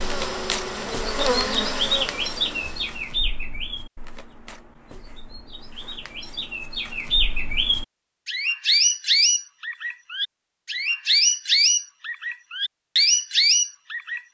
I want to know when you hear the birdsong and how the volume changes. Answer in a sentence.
You can hear the birdsong from 0.0 to 14.3 s, getting quieter then louder.